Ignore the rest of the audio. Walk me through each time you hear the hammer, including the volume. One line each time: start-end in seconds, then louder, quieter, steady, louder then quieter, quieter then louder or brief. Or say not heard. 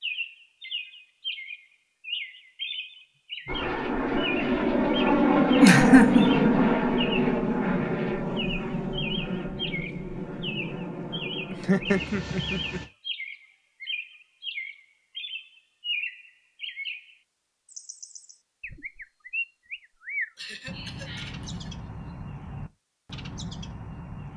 not heard.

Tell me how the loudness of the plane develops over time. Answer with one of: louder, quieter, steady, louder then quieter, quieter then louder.
quieter.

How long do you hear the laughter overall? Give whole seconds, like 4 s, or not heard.
3 s.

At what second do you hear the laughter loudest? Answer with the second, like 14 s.
6 s.